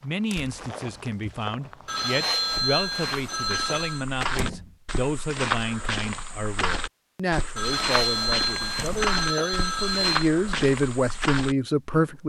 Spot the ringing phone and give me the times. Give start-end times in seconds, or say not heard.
1.9-4.0, 7.5-10.3.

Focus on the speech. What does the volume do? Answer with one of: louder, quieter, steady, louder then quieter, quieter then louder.
louder.